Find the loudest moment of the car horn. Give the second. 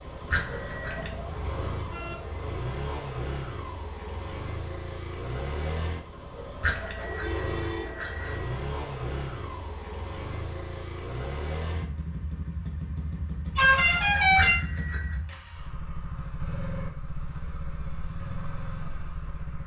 14 s.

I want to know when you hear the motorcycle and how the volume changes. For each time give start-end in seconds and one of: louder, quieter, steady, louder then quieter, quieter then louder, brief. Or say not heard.
0.0-19.6 steady.